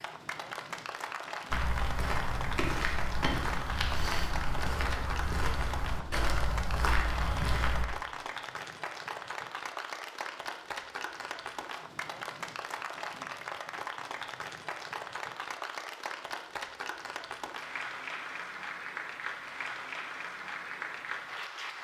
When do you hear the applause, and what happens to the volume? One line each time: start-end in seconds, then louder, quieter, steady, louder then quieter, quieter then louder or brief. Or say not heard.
0.0-21.7 steady.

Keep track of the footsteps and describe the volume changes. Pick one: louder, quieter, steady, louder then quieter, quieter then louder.
steady.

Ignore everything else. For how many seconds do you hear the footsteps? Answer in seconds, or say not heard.
6 s.